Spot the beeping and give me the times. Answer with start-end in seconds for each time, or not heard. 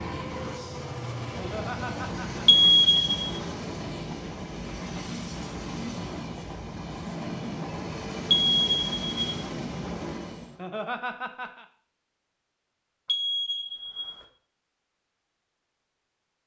2.5-3.3, 8.3-9.4, 13.1-14.2.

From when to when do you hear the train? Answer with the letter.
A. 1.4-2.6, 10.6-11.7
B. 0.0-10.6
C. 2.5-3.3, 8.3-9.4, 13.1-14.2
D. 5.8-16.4
B.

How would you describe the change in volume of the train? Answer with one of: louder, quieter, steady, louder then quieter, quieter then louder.
steady.